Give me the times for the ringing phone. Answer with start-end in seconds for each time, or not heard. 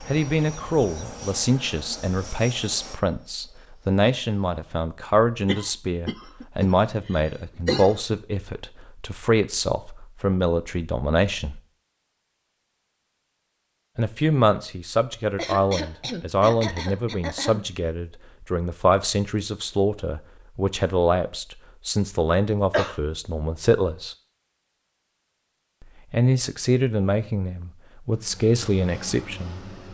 not heard.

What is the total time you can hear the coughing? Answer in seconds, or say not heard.
6 s.